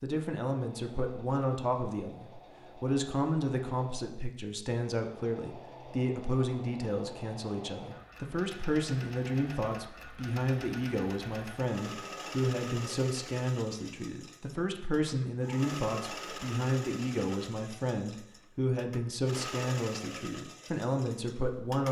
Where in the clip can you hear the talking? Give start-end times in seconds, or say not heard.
0.0-21.8.